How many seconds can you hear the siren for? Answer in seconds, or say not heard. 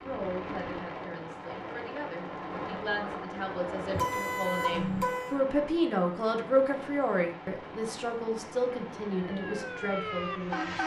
2 s.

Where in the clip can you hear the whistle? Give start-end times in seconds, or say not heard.
not heard.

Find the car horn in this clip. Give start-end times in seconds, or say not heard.
3.9-5.3.